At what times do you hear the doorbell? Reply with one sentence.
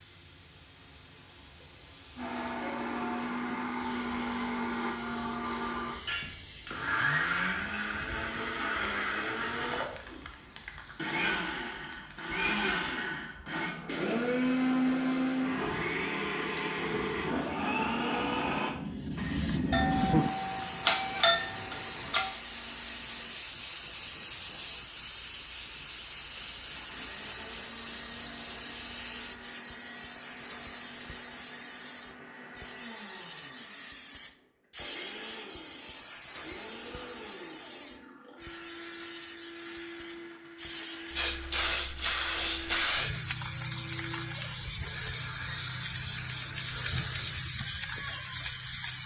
You can hear the doorbell from 19.7 to 22.3 s.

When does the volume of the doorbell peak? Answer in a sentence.
The volume of the doorbell peaks at 21 seconds.